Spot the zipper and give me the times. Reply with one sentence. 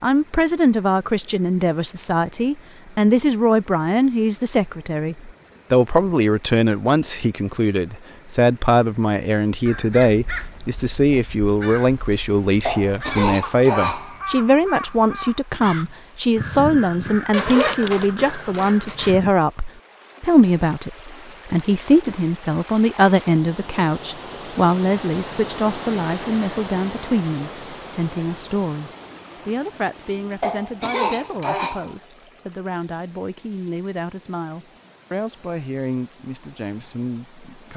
The zipper can be heard from 17.3 to 19.1 s.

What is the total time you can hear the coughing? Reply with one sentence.
You can hear the coughing for 3 seconds altogether.